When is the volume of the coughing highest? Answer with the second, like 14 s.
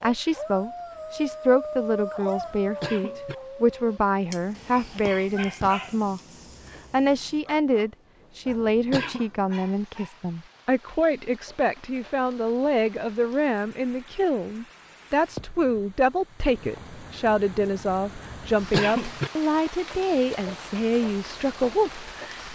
19 s.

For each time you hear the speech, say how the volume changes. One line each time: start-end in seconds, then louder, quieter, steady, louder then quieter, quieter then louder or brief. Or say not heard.
0.0-22.5 steady.